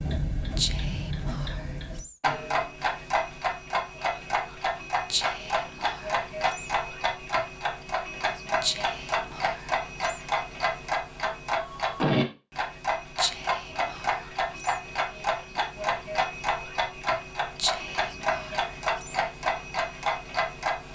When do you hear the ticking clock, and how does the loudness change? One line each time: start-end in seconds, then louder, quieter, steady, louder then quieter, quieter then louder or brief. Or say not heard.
0.0-20.9 steady.